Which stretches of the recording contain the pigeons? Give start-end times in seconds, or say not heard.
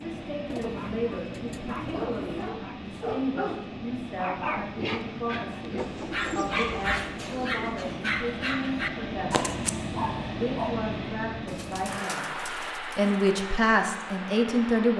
0.5-2.5, 5.8-7.8, 11.4-13.3.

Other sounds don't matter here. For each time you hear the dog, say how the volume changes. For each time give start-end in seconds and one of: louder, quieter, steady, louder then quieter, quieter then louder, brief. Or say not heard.
0.6-10.8 louder.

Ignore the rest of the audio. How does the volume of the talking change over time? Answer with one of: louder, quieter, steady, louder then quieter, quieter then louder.
louder.